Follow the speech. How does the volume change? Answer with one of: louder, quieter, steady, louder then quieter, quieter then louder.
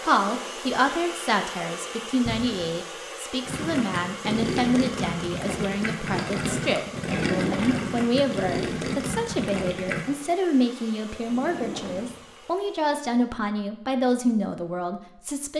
steady.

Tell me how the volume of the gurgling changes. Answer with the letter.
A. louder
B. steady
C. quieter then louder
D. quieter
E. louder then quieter
B.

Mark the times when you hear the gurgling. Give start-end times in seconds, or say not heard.
3.5-10.1.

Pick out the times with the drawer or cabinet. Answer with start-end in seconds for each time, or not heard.
2.2-2.7, 7.0-8.0, 11.2-12.4.